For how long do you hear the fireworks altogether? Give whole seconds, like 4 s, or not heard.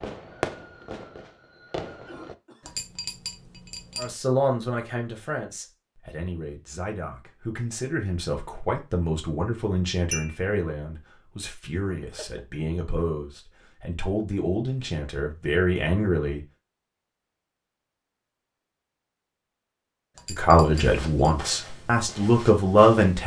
2 s.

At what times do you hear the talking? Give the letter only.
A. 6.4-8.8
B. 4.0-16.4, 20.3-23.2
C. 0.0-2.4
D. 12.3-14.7
B.